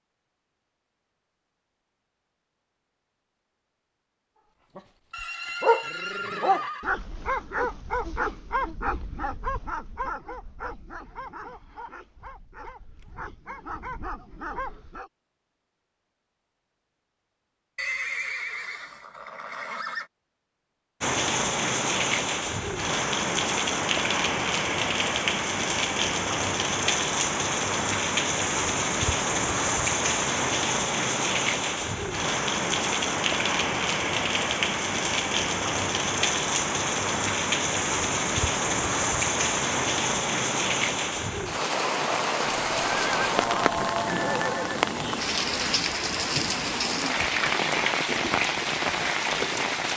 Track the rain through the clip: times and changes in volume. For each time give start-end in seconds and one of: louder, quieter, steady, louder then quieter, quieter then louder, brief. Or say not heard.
21.0-49.9 steady.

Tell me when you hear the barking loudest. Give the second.
6 s.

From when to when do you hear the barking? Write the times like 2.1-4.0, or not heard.
4.8-15.1.